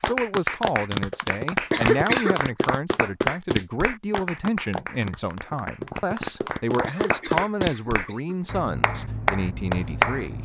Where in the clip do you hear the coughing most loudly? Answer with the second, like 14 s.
2 s.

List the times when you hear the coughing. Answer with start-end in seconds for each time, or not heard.
1.7-2.4, 6.8-8.3.